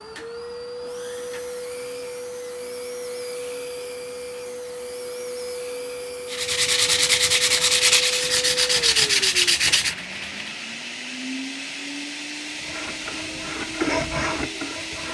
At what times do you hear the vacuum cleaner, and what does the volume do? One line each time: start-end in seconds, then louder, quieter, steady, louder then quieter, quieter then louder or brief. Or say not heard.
0.0-15.0 steady.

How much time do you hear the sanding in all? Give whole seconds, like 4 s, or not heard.
7 s.